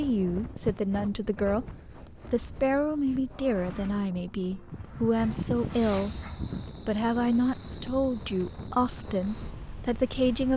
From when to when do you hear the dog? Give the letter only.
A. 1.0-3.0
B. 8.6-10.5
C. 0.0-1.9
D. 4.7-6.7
D.